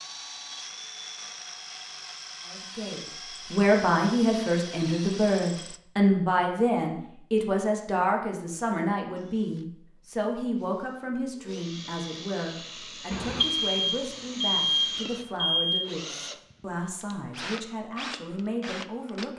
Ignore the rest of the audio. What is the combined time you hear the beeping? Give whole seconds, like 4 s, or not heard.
3 s.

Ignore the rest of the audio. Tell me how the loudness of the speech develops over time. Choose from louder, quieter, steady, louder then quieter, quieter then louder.
quieter.